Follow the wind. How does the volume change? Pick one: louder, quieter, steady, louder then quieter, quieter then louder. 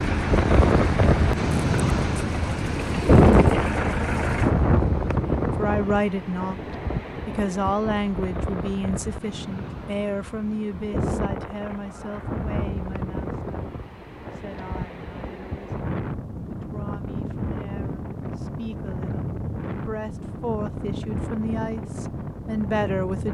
quieter.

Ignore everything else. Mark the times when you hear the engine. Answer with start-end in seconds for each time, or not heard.
0.0-4.5.